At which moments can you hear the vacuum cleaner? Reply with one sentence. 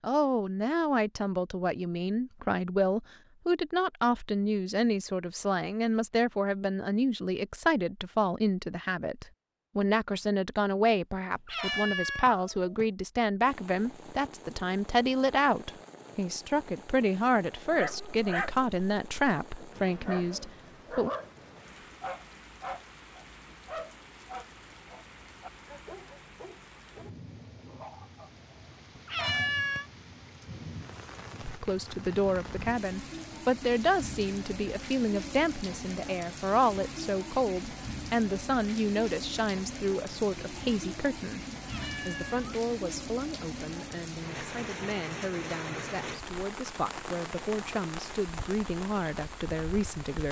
You can't hear the vacuum cleaner here.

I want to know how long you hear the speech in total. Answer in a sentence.
The speech can be heard for 40 seconds in total.